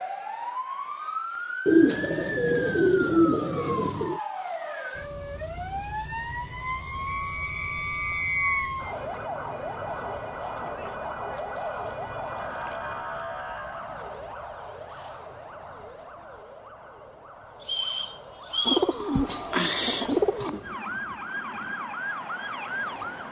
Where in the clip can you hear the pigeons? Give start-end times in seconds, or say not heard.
1.6-4.2, 18.6-20.6.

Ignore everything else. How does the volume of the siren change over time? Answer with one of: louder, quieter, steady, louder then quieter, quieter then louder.
quieter then louder.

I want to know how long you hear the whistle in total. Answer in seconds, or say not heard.
3 s.